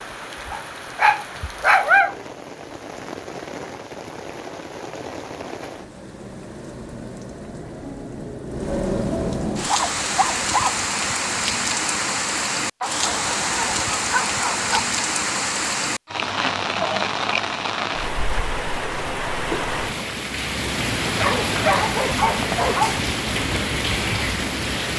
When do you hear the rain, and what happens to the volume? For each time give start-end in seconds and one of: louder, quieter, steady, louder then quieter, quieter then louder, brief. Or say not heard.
0.0-24.9 louder.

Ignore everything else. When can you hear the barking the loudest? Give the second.
2 s.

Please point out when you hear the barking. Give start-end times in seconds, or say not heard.
0.5-2.2, 9.7-10.8, 12.8-14.8, 21.1-23.0.